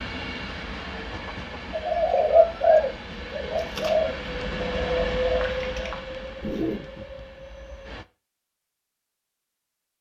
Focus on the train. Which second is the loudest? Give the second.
5 s.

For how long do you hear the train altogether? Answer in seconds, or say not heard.
8 s.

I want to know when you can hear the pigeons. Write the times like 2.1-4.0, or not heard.
1.7-6.8.